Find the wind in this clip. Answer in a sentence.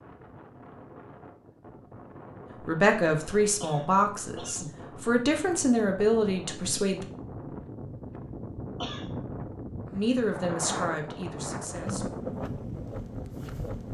You can hear the wind from 0.0 to 13.8 s.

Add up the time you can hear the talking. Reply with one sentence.
The talking can be heard for 7 seconds in total.